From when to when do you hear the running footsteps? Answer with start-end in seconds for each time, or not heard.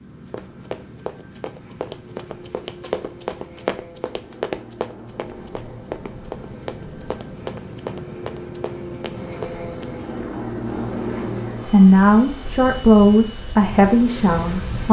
0.2-9.8.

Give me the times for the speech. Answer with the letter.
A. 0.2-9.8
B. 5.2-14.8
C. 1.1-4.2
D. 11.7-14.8
D.